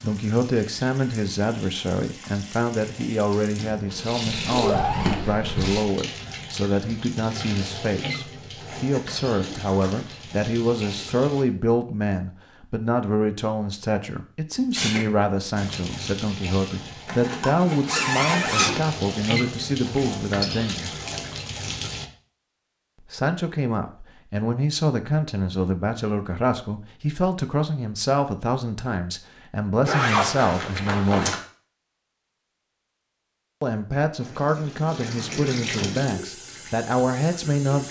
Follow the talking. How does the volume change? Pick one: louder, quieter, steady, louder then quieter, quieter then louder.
steady.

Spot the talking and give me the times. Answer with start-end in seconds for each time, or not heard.
0.0-20.9, 23.0-31.4, 33.6-37.8.